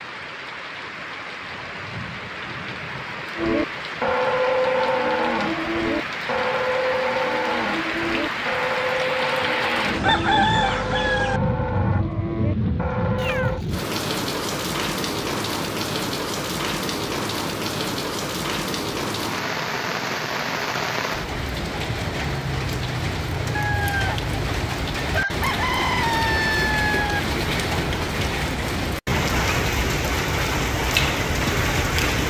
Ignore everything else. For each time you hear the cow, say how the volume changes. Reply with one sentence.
You can hear the cow from 3.4 to 13.7 s, getting quieter.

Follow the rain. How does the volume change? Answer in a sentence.
The loudness of the rain goes up.